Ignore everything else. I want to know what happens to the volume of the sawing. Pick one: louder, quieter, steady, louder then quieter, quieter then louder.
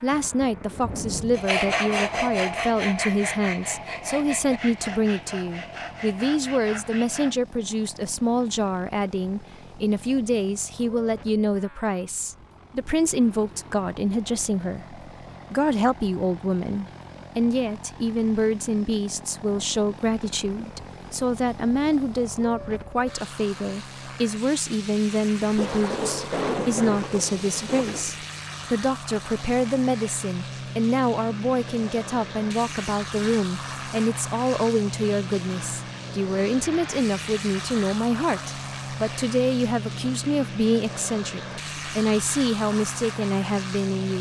quieter.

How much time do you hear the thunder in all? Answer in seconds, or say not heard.
4 s.